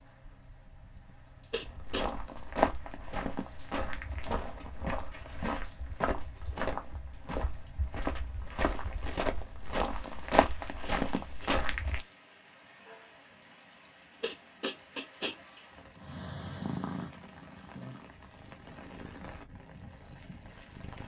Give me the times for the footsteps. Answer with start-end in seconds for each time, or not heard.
1.6-12.1.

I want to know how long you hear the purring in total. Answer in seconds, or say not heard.
5 s.